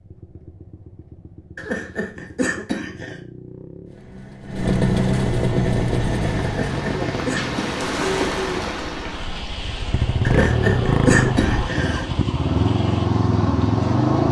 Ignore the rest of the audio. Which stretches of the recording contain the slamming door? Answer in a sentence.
The slamming door can't be heard in this clip.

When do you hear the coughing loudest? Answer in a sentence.
The volume of the coughing peaks at 11 seconds.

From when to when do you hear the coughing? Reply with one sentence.
The coughing can be heard from 1.6 to 3.2 s, from 6.5 to 7.8 s and from 10.2 to 12.1 s.